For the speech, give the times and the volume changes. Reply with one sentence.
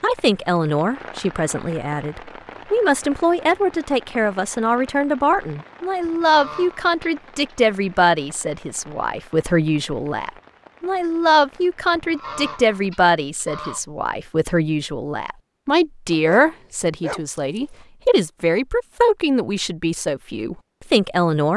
You can hear the speech from 0.0 to 21.5 s, at a steady volume.